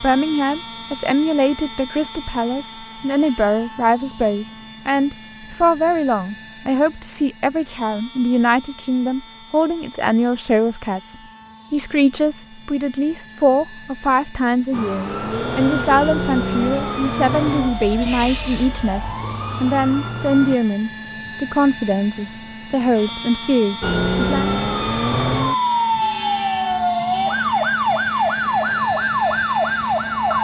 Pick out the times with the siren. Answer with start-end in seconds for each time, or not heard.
14.7-20.6, 23.8-30.3.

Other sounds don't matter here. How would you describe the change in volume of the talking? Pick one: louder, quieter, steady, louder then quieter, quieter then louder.
steady.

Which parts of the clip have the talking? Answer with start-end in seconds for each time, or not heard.
0.0-24.5.